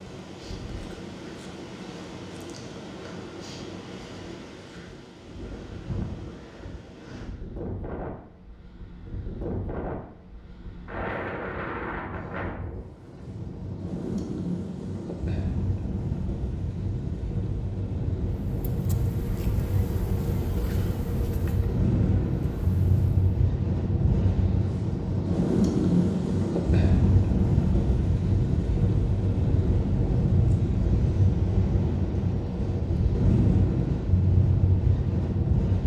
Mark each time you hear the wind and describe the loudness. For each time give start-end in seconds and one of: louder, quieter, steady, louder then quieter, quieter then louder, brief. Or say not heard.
0.0-35.8 louder.